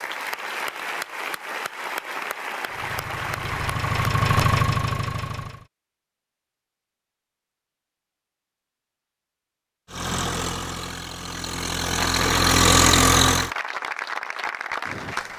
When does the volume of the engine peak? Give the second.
13 s.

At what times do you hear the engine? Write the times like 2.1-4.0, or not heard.
2.6-5.7, 9.9-13.5.